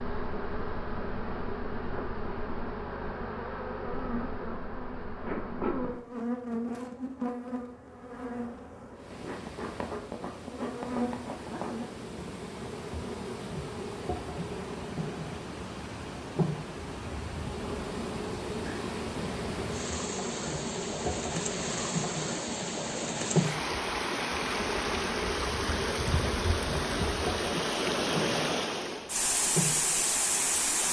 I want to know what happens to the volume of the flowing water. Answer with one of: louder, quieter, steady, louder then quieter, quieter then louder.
louder.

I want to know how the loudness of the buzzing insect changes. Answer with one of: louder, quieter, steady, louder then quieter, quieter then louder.
steady.